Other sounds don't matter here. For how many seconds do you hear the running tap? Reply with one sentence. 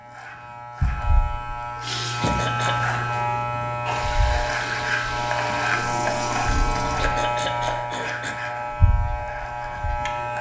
You can hear the running tap for 5 seconds altogether.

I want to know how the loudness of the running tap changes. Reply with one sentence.
The volume of the running tap stays about the same.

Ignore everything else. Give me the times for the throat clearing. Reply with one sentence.
The throat clearing can be heard from 2.2 to 2.8 s and from 7.0 to 8.3 s.